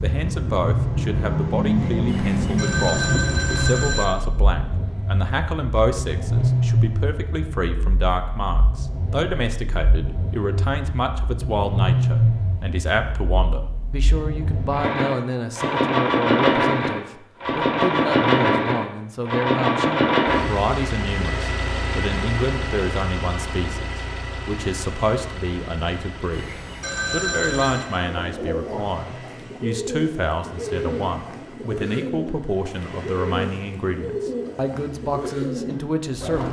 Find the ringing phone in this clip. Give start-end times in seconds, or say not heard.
2.0-4.0, 26.3-27.9.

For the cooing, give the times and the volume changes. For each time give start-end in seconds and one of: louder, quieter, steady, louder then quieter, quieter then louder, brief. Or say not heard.
28.0-36.4 steady.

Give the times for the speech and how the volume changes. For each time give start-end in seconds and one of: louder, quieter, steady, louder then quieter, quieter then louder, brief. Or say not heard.
0.0-36.4 steady.